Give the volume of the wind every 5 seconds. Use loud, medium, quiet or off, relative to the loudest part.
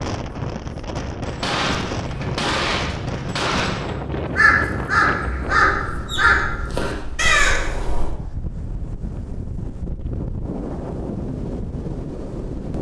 loud, medium, loud.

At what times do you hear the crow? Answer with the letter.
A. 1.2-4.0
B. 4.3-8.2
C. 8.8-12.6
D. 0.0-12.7
B.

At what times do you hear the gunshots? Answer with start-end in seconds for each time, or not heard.
1.2-4.0.